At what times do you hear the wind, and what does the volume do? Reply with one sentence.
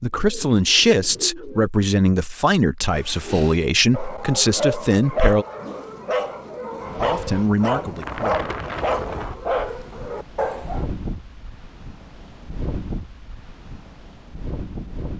The wind can be heard from 6.8 to 15.1 s, getting quieter.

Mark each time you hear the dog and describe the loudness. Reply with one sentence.
The dog can be heard from 2.9 to 10.8 s, at a steady volume.